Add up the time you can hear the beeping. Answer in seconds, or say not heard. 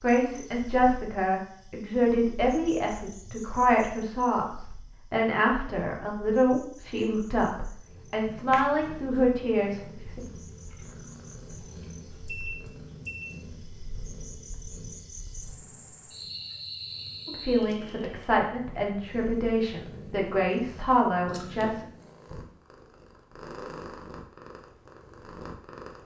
2 s.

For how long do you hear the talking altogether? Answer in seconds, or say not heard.
15 s.